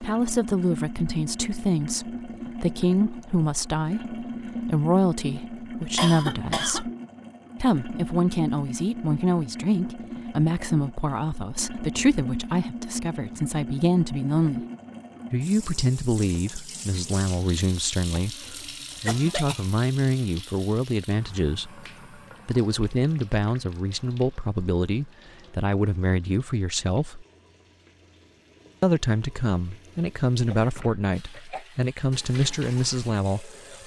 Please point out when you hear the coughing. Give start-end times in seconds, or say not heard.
6.0-6.8, 18.1-19.6, 30.5-31.6.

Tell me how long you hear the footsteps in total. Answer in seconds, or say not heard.
not heard.